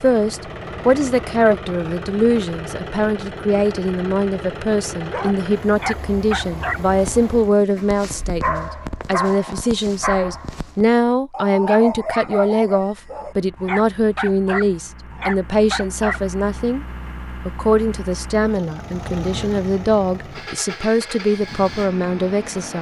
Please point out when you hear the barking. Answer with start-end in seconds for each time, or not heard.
5.0-16.2.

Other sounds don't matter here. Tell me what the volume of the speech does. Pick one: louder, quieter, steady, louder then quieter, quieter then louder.
steady.